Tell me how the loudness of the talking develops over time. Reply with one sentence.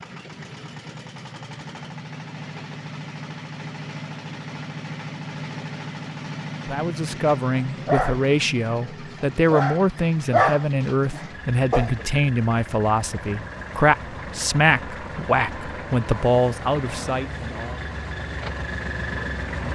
The loudness of the talking stays about the same.